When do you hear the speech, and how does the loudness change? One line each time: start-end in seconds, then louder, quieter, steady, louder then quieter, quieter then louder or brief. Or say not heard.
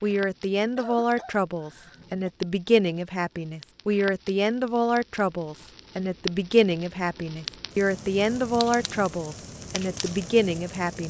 0.0-11.0 steady.